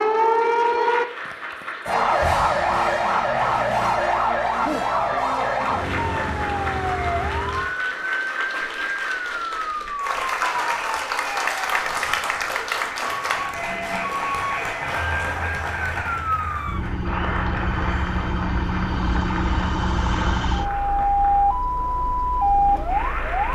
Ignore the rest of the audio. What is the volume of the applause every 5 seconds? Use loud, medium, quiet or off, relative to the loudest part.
medium, medium, loud, medium, medium.